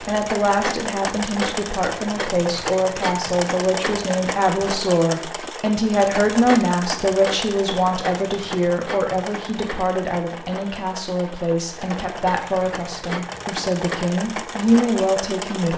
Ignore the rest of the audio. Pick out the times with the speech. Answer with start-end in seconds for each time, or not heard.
0.0-15.7.